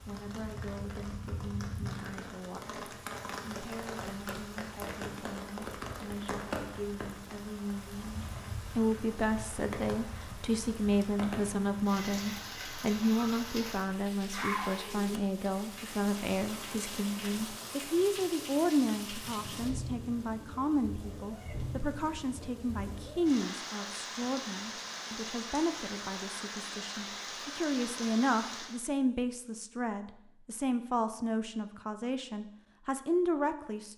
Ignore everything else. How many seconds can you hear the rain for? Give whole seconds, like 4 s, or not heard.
29 s.